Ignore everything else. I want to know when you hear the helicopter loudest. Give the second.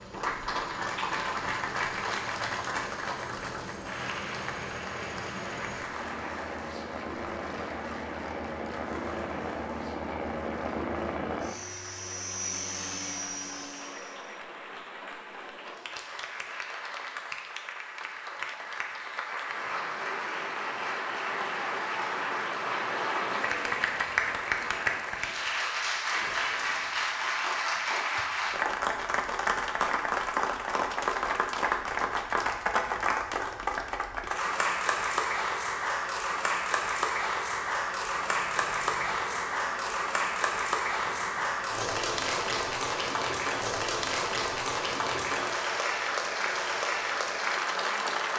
11 s.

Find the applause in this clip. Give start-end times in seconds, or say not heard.
0.0-48.3.